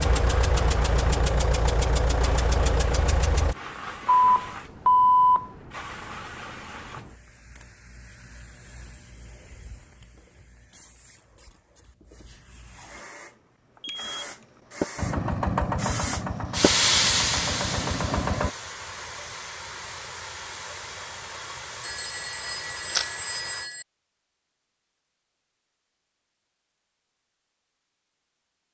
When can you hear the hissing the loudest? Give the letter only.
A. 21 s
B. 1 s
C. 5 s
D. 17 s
D.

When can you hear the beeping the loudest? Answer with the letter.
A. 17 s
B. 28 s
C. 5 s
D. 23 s
C.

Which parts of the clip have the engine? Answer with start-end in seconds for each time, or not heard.
0.0-3.5, 14.9-18.5.